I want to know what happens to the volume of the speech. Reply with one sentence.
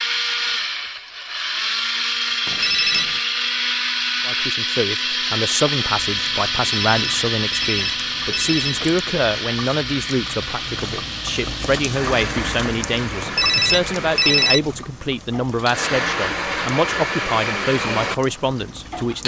The volume of the speech stays about the same.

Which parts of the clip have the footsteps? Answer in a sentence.
You can't hear the footsteps here.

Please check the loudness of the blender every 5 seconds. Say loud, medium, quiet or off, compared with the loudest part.
loud, loud, medium, loud.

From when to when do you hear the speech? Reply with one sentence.
The speech can be heard from 4.2 to 19.2 s.